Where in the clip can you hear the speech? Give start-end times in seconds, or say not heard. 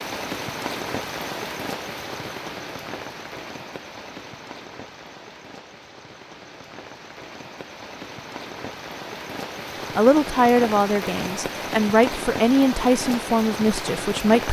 9.9-14.4.